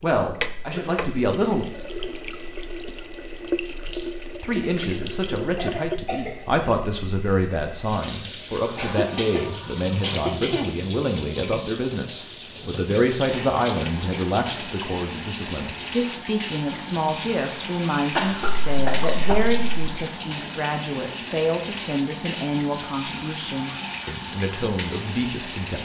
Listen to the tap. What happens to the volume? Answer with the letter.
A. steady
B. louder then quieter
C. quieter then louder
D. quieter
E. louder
A.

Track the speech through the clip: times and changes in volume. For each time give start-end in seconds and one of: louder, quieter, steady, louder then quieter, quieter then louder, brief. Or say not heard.
0.0-1.6 brief
3.9-25.8 steady.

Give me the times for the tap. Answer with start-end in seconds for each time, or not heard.
0.0-25.8.